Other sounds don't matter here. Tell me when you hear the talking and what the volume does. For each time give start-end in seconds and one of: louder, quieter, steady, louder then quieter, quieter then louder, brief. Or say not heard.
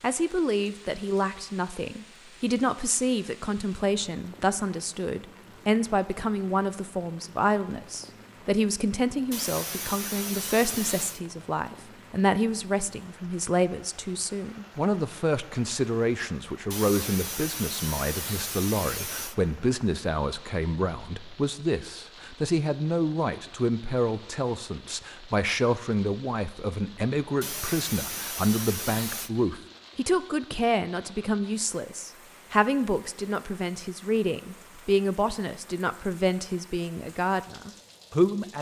0.0-38.5 steady.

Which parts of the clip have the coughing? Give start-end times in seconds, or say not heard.
9.3-11.2, 16.7-19.4, 27.4-29.3.